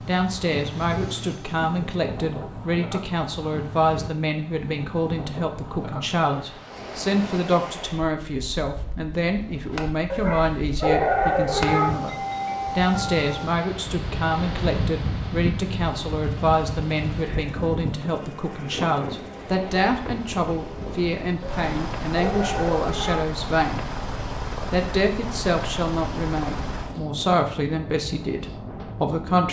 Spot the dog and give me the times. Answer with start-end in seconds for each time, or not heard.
10.1-11.9, 21.4-23.2.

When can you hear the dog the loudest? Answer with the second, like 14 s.
11 s.